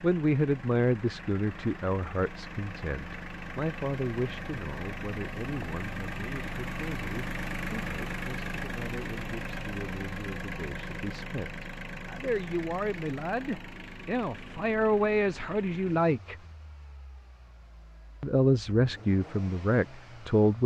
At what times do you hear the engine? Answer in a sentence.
You can hear the engine from 0.0 to 20.6 s.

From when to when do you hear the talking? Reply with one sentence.
You can hear the talking from 0.0 to 16.4 s and from 18.2 to 20.6 s.